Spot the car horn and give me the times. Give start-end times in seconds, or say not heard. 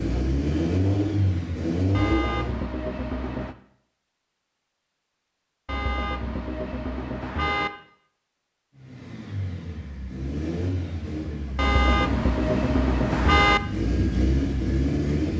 1.9-3.5, 5.7-7.7, 11.6-13.6.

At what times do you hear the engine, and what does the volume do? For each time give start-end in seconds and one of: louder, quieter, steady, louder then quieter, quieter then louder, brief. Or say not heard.
0.0-2.6 brief
8.8-15.3 louder.